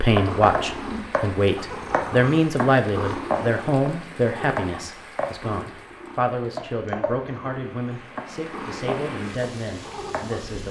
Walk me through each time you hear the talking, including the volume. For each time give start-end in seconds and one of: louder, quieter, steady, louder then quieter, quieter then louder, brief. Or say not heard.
0.0-10.6 quieter.